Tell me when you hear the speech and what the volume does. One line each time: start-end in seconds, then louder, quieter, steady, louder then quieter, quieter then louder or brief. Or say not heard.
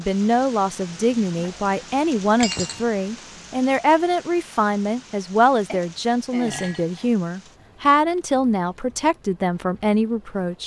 0.0-10.6 steady.